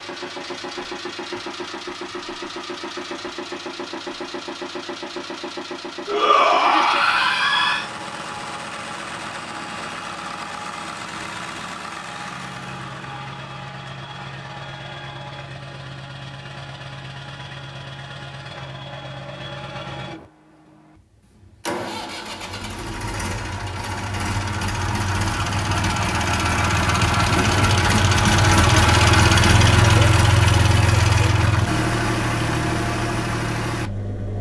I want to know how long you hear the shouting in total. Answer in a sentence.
You can hear the shouting for 2 seconds altogether.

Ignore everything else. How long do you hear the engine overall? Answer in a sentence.
The engine can be heard for 34 seconds in total.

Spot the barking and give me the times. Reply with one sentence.
The barking can't be heard in this clip.